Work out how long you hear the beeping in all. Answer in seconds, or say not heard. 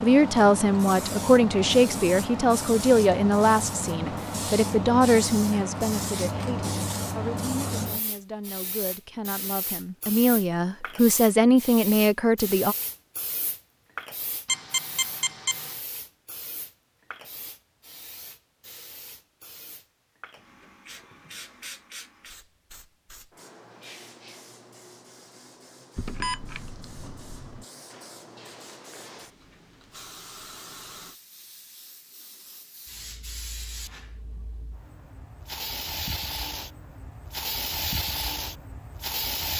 3 s.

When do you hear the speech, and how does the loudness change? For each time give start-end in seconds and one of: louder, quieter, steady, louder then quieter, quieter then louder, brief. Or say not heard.
0.0-12.8 quieter then louder.